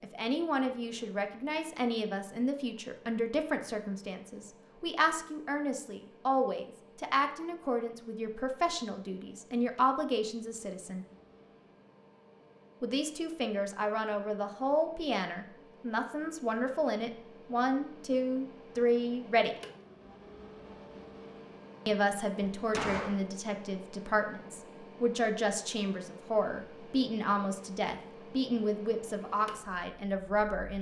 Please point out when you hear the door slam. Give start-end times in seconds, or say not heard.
22.6-23.2.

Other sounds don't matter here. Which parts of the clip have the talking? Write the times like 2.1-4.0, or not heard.
0.0-11.1, 12.8-19.6, 21.9-30.7.